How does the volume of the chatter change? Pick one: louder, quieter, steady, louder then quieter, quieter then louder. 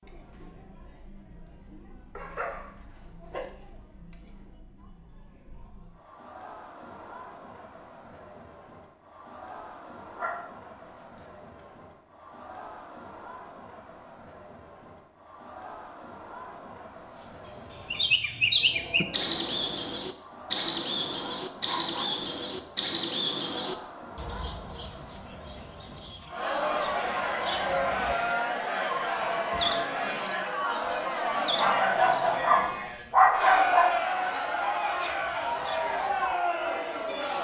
louder.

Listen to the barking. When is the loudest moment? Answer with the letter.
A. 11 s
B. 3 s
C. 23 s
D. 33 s
D.